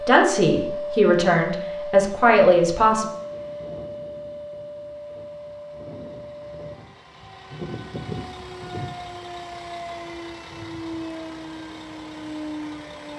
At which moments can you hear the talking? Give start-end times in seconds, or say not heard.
0.1-3.1.